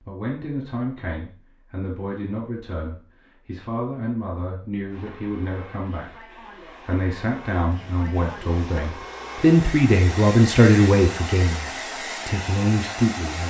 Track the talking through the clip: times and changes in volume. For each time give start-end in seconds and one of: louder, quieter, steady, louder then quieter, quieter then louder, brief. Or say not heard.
0.0-13.4 louder.